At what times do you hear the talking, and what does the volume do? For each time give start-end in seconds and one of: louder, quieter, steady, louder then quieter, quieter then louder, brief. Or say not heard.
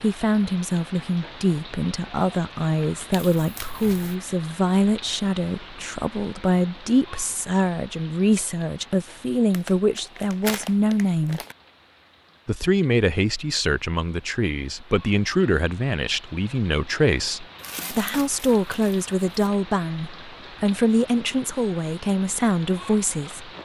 0.0-11.4 steady
12.4-23.6 steady.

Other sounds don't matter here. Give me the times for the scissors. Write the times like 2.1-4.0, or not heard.
not heard.